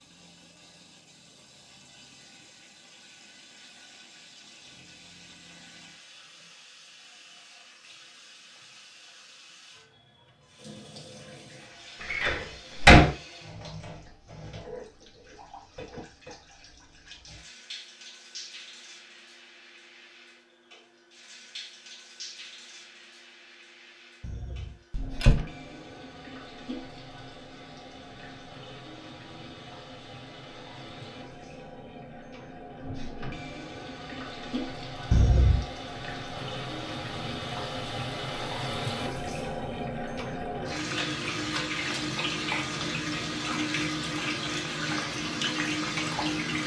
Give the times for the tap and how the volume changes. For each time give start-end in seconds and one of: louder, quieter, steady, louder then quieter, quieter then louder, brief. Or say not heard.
0.0-46.6 louder.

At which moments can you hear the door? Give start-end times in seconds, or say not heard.
12.0-13.1, 24.2-25.4, 35.1-35.6.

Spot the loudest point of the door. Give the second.
13 s.